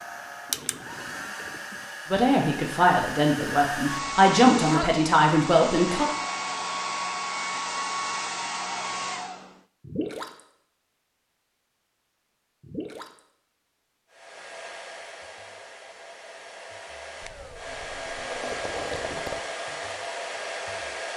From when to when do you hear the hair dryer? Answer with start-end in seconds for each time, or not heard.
0.0-9.6, 14.1-21.1.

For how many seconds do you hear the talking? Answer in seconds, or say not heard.
4 s.